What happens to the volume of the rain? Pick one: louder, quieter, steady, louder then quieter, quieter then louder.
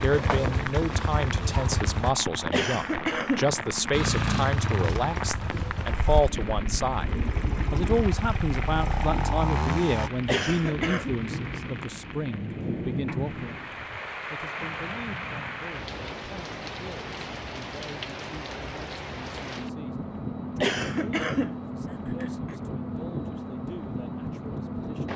steady.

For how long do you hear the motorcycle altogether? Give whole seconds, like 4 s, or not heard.
8 s.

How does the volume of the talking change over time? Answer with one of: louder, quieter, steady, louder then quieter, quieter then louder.
quieter.